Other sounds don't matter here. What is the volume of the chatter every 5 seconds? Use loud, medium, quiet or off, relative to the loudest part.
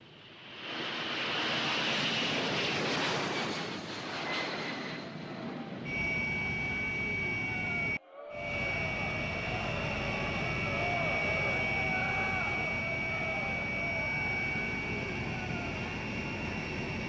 off, medium, loud, medium.